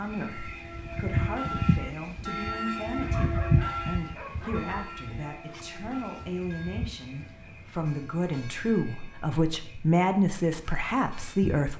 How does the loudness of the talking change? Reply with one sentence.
The volume of the talking goes up.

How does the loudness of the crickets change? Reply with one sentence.
The volume of the crickets goes down.